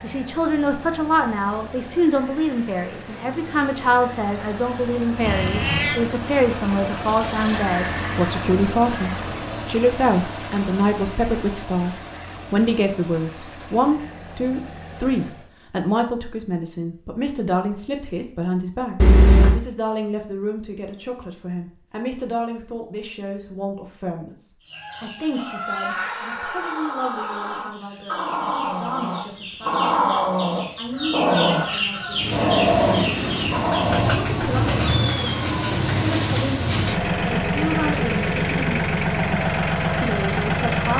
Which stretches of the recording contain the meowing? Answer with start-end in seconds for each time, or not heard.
5.2-6.0, 18.9-19.6, 34.4-35.9.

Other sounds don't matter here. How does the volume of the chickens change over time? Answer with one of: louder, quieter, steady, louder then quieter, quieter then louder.
louder.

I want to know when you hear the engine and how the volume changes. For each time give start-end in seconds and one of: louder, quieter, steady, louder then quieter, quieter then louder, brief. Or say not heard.
0.0-15.6 louder then quieter
32.1-40.9 steady.